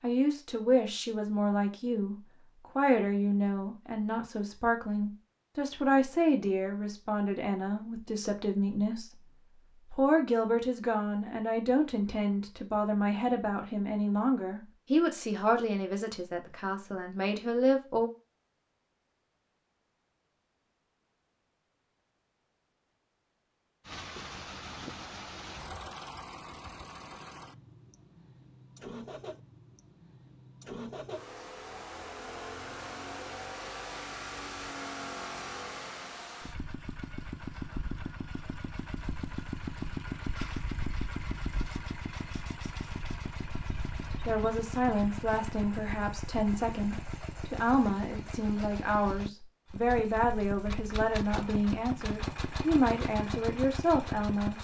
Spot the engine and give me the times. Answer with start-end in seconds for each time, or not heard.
23.9-54.5.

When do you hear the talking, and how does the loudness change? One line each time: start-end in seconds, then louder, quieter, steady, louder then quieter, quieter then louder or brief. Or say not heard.
0.0-2.1 brief
2.8-18.1 steady
44.2-54.5 steady.